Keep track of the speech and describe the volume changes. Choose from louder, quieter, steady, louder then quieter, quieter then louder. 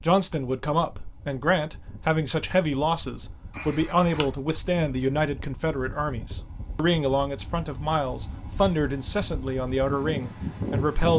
steady.